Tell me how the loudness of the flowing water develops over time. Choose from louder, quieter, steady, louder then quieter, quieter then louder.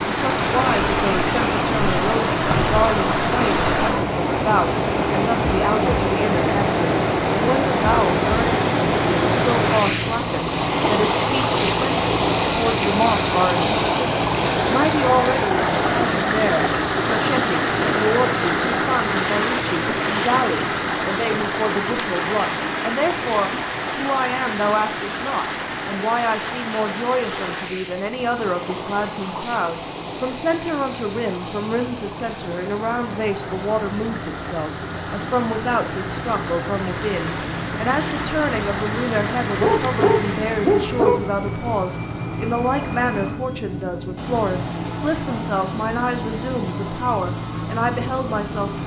quieter.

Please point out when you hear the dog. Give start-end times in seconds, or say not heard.
39.6-41.2.